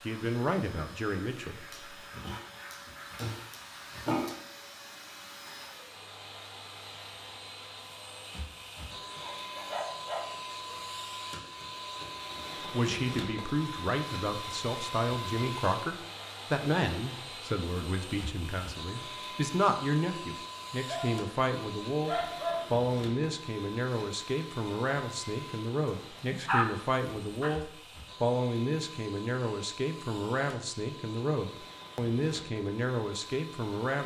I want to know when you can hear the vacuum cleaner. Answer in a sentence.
You can hear the vacuum cleaner from 0.0 to 34.0 s.